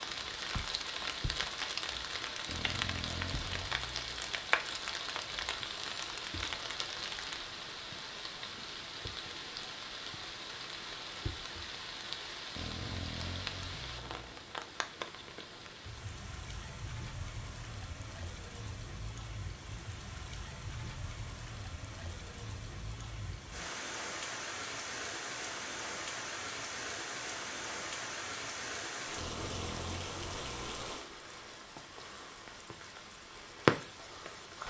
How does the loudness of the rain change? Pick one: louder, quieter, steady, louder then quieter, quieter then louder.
quieter then louder.